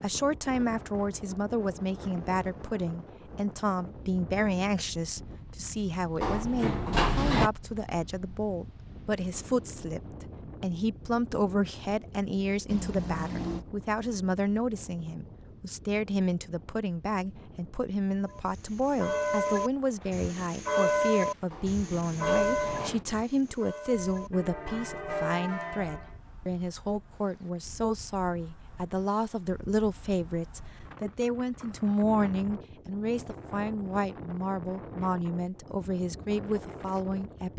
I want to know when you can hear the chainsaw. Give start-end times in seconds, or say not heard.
not heard.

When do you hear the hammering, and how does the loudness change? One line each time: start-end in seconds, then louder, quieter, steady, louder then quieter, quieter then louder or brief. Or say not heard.
not heard.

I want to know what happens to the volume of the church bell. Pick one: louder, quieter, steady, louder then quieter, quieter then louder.
quieter then louder.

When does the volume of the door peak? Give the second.
7 s.